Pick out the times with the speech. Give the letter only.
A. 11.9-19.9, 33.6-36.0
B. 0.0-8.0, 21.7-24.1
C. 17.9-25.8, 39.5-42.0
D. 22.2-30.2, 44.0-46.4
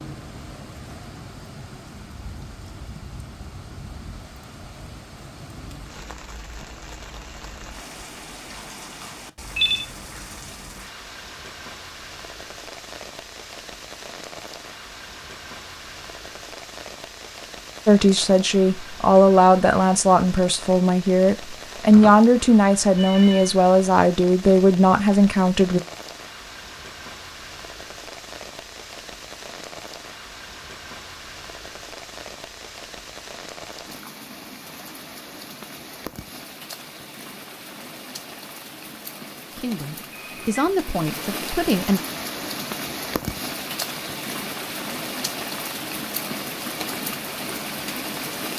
C.